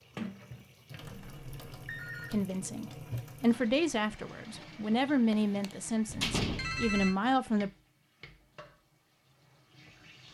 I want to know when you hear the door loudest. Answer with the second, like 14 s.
6 s.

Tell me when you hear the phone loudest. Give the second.
7 s.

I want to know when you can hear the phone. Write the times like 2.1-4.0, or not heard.
1.0-2.4, 6.0-7.2.